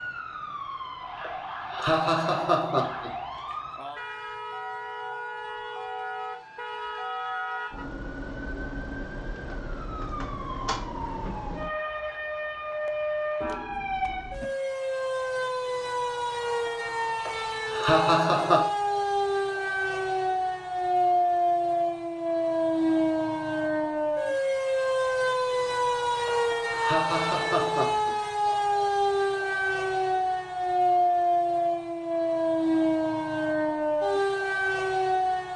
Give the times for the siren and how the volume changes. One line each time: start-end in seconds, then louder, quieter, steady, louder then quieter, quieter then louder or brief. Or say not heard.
0.0-35.5 louder.